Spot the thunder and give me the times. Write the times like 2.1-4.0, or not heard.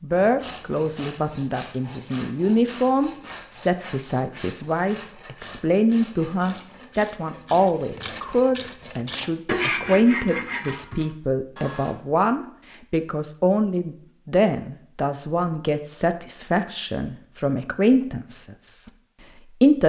not heard.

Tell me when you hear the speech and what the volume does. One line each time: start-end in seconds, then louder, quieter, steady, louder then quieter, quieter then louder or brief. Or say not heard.
0.0-19.8 steady.